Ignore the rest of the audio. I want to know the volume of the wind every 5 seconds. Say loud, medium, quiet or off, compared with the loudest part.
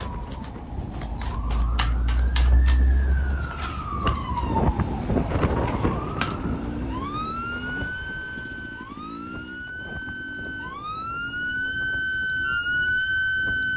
loud, loud, quiet.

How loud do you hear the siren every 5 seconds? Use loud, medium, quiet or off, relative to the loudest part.
medium, medium, loud.